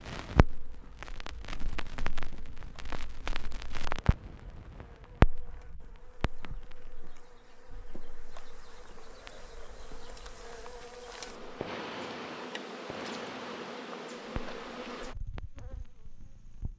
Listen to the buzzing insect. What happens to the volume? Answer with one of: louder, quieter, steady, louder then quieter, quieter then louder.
louder.